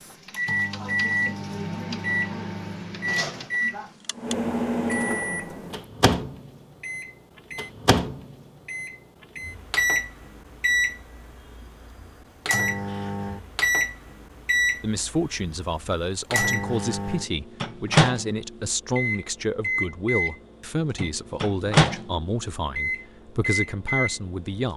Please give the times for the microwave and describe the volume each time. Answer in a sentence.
The microwave can be heard from 0.0 to 24.7 s, at a steady volume.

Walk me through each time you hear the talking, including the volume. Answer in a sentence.
The talking can be heard from 14.8 to 24.7 s, at a steady volume.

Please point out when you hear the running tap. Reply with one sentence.
You can't hear the running tap here.